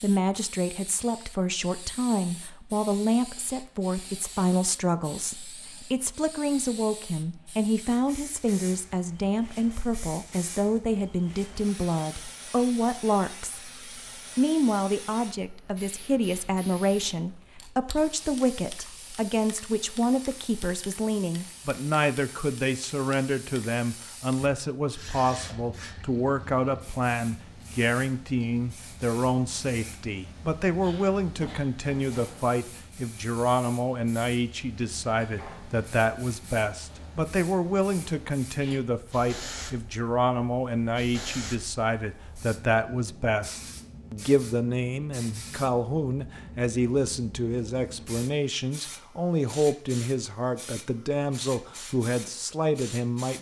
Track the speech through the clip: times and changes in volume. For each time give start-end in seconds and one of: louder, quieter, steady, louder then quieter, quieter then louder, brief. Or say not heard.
0.0-53.3 steady.